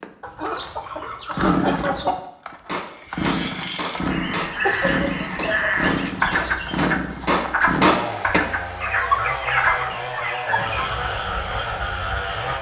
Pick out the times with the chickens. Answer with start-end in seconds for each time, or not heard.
0.2-2.1, 4.6-6.8, 8.8-10.9.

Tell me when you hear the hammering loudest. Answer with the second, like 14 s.
8 s.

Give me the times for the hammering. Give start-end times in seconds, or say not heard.
2.6-4.6, 5.3-8.4.